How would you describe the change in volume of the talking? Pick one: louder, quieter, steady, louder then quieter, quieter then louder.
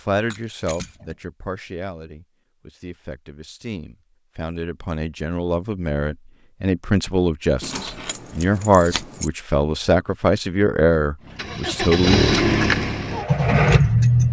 louder.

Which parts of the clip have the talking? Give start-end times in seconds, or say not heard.
0.0-12.2.